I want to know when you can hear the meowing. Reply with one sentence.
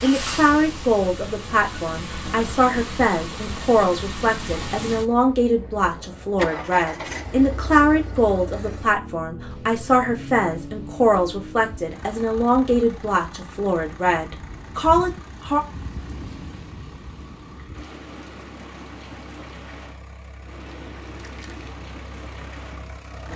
The meowing can't be heard in this clip.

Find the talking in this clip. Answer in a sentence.
You can hear the talking from 0.0 to 15.6 s.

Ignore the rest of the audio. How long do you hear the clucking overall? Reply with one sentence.
The clucking can't be heard in this clip.